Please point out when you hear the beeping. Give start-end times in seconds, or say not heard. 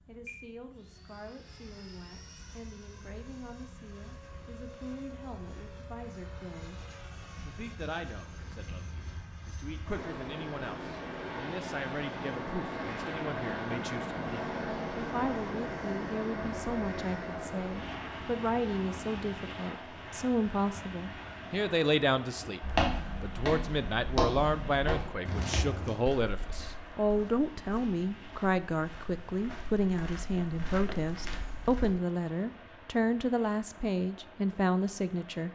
not heard.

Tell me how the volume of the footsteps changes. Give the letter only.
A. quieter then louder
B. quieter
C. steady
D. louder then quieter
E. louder
A.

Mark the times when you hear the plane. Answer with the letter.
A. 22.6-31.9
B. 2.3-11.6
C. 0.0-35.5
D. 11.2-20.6
C.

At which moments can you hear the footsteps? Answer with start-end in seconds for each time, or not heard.
22.6-31.9.